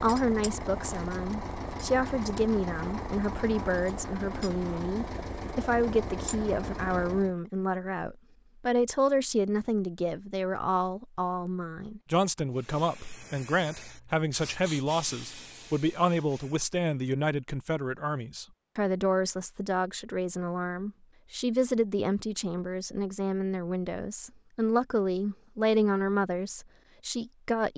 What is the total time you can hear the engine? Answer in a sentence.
The engine can be heard for 7 seconds in total.